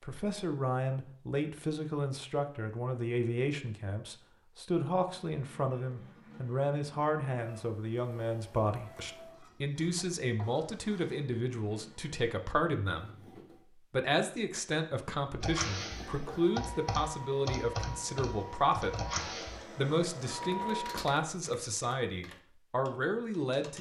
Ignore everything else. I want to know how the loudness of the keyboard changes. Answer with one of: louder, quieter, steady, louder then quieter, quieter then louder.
quieter.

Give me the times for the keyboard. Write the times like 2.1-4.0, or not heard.
15.4-23.7.